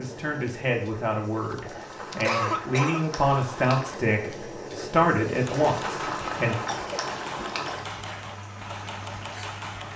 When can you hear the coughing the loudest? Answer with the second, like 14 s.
2 s.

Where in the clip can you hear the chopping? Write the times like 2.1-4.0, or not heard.
5.3-9.9.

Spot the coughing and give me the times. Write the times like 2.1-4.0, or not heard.
1.5-3.0, 6.5-7.8.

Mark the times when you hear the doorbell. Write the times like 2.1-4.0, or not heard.
not heard.